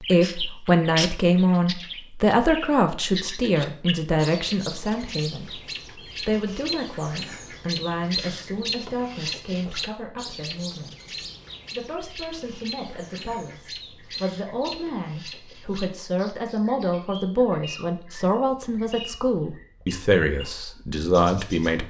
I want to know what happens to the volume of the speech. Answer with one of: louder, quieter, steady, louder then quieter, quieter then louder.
quieter then louder.